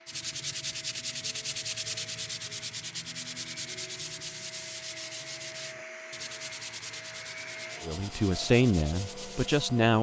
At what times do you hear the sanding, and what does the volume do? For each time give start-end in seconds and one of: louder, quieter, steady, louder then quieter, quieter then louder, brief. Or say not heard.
0.1-9.7 quieter.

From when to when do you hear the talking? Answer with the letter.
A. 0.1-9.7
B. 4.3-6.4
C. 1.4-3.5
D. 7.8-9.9
D.